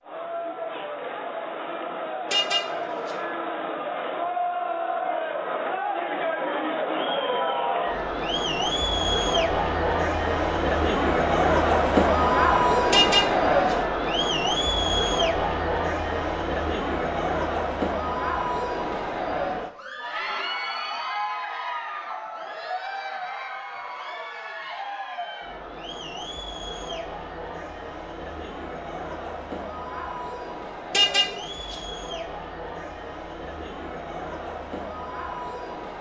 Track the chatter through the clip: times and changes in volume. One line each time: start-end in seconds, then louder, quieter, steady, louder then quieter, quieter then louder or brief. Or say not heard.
0.0-35.9 louder then quieter.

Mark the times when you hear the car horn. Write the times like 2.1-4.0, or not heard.
2.3-3.1, 12.9-13.8, 30.9-31.8.